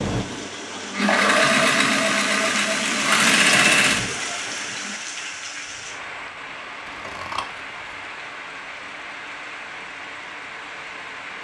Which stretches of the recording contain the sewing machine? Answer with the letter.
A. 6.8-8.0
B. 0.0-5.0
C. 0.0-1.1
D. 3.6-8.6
B.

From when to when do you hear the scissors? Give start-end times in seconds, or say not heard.
6.8-8.0.